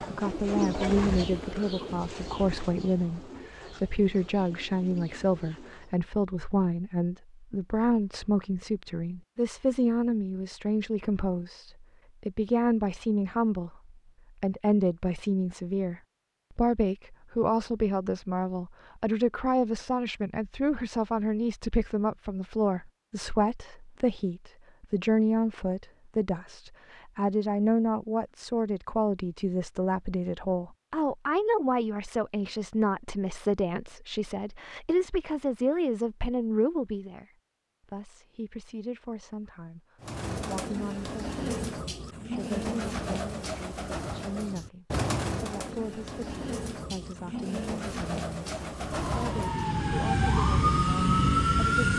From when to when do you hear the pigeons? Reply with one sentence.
You can hear the pigeons from 0.0 to 6.0 s and from 40.0 to 49.7 s.